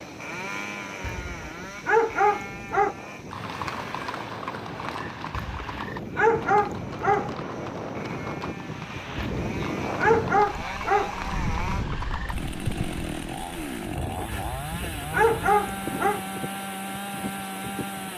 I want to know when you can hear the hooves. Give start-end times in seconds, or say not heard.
3.2-12.9.